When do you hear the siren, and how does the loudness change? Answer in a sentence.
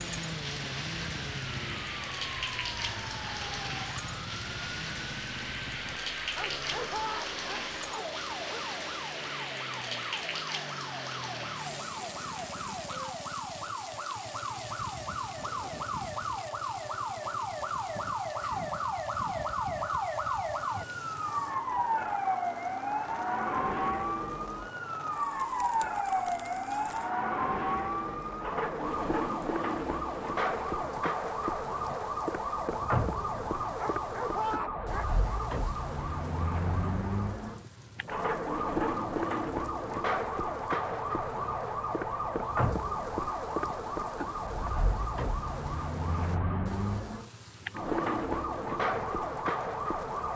The siren can be heard from 0.0 to 50.3 s, getting louder.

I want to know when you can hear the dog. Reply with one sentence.
The dog can be heard from 6.3 to 8.7 s and from 33.8 to 35.5 s.